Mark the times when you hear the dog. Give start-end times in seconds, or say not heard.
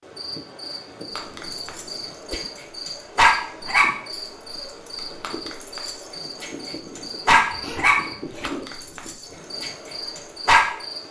1.1-10.7.